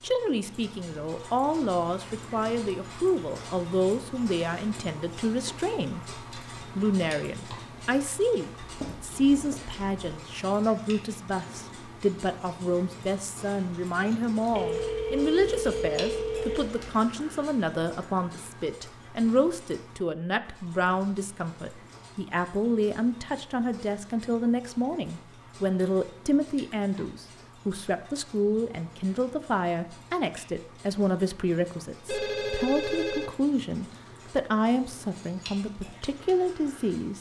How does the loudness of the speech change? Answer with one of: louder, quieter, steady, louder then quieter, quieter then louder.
steady.